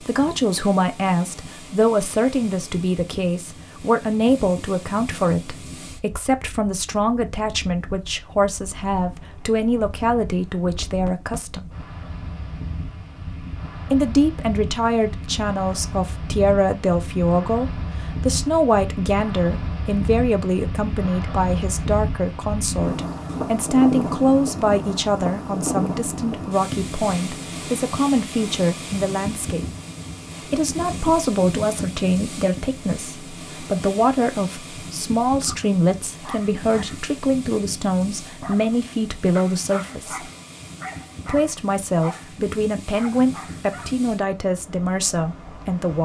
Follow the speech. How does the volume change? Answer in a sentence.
The loudness of the speech stays about the same.